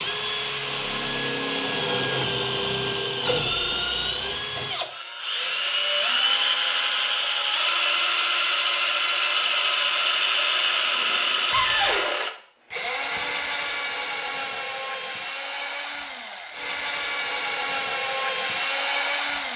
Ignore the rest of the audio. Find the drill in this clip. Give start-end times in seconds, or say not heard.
0.0-19.5.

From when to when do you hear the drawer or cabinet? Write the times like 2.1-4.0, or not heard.
11.5-12.1.